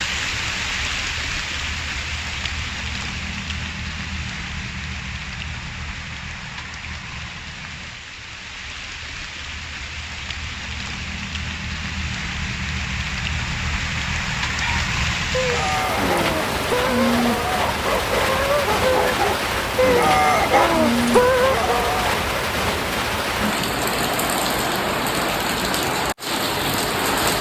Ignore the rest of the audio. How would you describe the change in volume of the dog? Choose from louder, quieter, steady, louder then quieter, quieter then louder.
louder.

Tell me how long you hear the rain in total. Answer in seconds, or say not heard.
27 s.